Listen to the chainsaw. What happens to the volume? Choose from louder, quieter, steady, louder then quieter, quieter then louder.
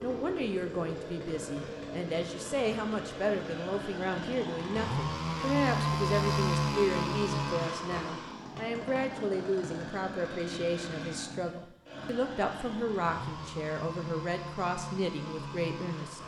louder then quieter.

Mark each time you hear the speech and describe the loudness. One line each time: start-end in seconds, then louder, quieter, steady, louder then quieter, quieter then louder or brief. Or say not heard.
0.0-16.2 steady.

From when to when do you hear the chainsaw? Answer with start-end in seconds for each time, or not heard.
0.0-16.2.